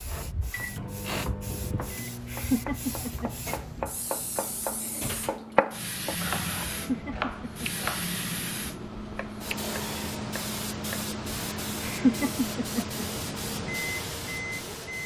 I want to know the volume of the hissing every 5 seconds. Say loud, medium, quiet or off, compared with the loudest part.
medium, loud, loud.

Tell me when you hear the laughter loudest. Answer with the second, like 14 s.
12 s.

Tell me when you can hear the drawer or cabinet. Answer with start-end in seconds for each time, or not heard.
3.0-5.5.